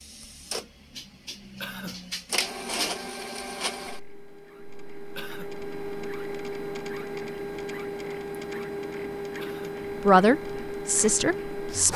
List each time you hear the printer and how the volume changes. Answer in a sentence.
The printer can be heard from 0.0 to 11.9 s, at a steady volume.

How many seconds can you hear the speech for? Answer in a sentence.
You can hear the speech for 2 seconds altogether.